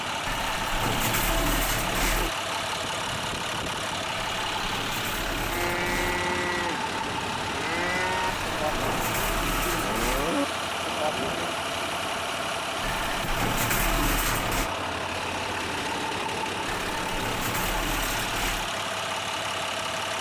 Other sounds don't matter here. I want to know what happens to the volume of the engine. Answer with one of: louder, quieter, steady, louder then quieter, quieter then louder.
steady.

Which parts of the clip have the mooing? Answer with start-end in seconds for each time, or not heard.
5.4-11.7.